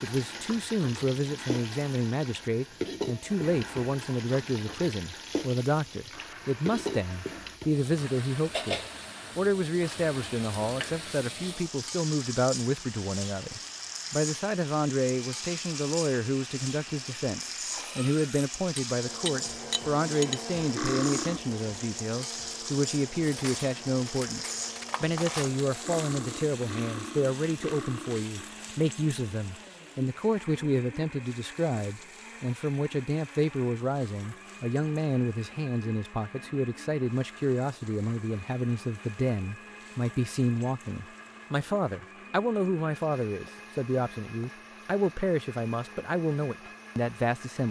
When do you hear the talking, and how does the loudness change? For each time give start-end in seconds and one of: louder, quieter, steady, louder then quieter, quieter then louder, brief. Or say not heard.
0.0-47.6 steady.